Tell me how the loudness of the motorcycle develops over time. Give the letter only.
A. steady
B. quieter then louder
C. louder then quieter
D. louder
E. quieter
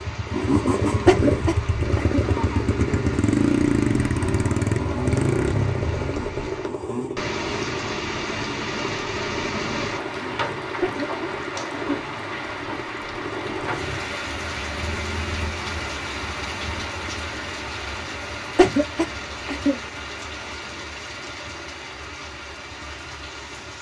E.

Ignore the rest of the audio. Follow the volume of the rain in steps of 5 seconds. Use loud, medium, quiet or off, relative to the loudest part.
medium, loud, loud, loud, medium.